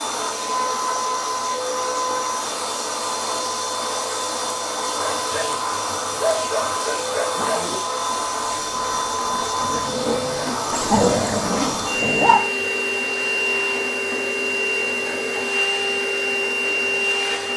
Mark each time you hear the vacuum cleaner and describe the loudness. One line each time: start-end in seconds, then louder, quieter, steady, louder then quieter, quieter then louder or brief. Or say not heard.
0.0-17.5 steady.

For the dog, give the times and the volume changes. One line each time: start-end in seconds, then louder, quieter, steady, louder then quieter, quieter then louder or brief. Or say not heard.
5.0-12.4 quieter then louder.